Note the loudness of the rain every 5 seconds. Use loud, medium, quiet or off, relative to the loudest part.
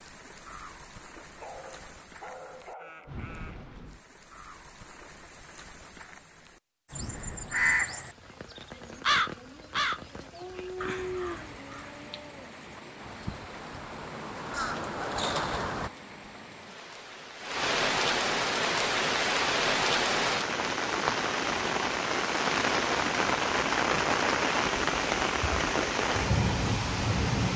quiet, quiet, quiet, loud, loud, loud.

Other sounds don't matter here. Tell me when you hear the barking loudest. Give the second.
11 s.